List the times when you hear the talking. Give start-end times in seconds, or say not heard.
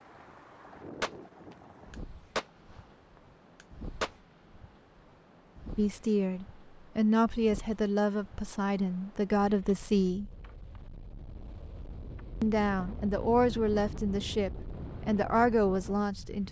5.8-10.3, 12.4-16.4.